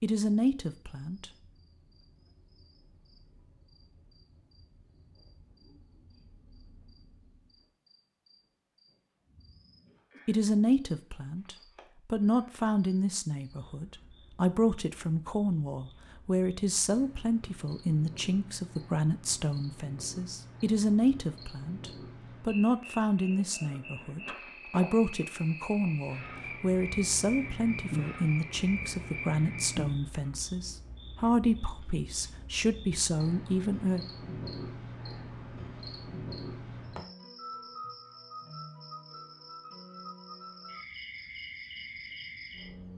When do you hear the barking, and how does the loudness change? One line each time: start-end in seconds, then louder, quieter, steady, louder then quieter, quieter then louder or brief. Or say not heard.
not heard.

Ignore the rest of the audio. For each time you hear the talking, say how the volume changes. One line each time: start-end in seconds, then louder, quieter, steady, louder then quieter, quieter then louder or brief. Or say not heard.
0.0-1.3 brief
10.2-34.0 steady.